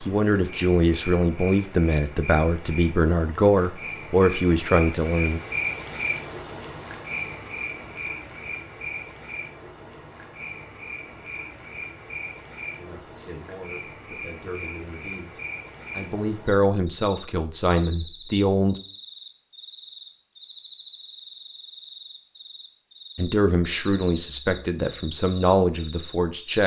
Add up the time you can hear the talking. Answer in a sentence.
The talking can be heard for 15 seconds in total.